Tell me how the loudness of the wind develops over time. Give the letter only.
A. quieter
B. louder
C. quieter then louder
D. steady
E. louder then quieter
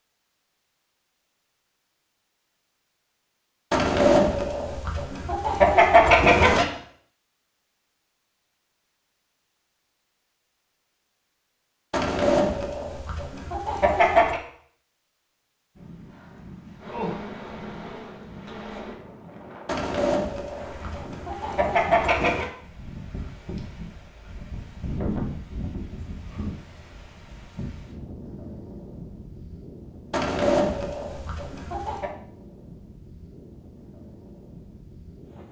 E.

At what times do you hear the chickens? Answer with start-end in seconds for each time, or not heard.
3.7-6.7, 11.9-14.4, 19.6-22.5, 30.1-32.1.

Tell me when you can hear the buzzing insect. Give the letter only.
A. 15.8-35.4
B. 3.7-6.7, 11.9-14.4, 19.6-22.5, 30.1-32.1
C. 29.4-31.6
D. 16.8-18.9
D.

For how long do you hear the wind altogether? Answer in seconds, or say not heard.
20 s.